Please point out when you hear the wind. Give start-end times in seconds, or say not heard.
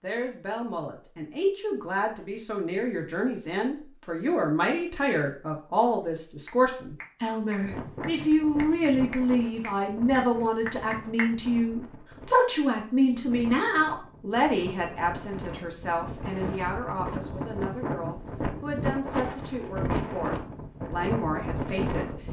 7.6-22.2.